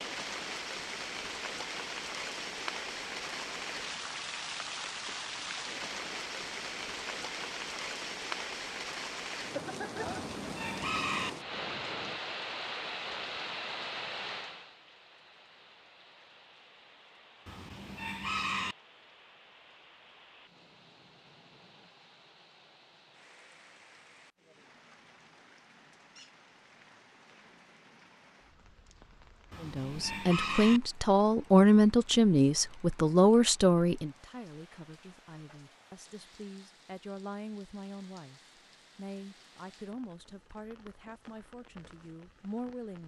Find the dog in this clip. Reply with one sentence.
You can't hear the dog here.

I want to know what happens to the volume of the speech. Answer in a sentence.
The loudness of the speech goes down.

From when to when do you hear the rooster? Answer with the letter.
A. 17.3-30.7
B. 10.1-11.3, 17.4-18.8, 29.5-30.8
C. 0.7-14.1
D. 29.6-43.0
B.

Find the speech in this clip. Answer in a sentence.
You can hear the speech from 29.6 to 43.0 s.